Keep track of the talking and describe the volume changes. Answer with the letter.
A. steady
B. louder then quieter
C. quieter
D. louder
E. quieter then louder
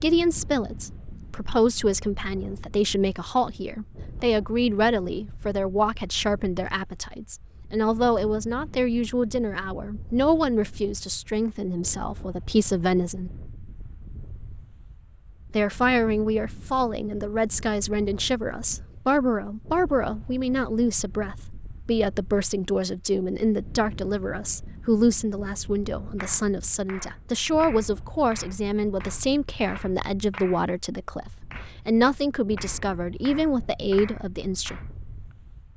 A.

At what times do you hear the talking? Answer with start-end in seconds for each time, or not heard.
0.0-13.3, 15.5-34.8.